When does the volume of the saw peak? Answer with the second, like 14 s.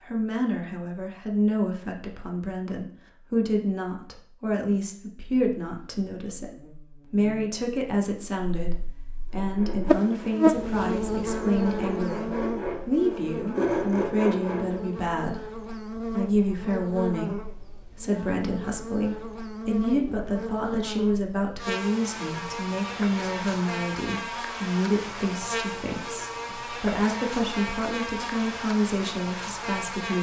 14 s.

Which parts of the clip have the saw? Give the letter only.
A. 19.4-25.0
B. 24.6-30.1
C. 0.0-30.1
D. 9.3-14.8
D.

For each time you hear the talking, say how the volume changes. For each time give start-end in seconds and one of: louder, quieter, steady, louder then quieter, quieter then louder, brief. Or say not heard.
0.0-30.1 steady.